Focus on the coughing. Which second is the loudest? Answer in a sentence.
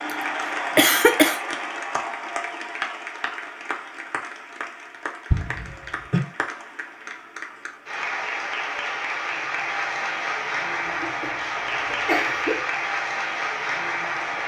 The volume of the coughing peaks at 1 second.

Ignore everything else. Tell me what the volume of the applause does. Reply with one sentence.
The volume of the applause goes down, then up.